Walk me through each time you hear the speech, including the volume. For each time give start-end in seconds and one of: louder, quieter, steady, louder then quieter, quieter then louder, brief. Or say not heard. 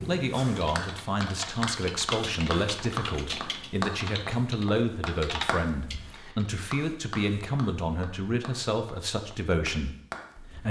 0.0-10.6 steady.